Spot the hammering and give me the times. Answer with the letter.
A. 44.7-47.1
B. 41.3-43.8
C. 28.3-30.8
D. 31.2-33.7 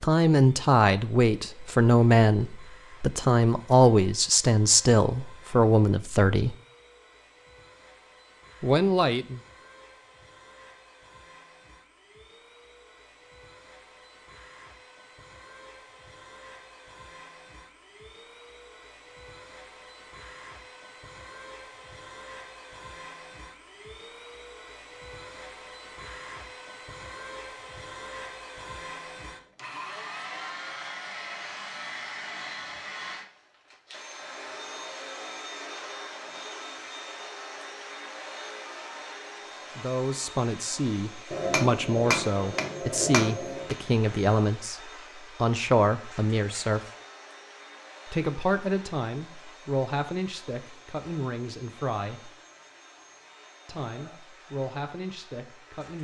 B.